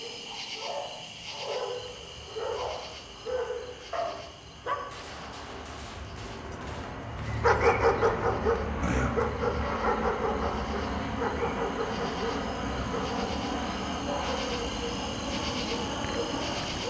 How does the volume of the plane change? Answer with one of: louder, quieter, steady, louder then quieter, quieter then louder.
louder.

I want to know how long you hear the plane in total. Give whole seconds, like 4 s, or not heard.
15 s.